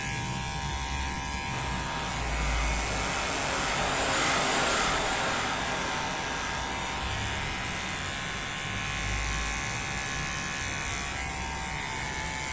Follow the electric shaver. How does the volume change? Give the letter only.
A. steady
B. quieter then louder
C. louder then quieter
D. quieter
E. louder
A.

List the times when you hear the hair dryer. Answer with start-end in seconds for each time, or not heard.
1.5-12.4.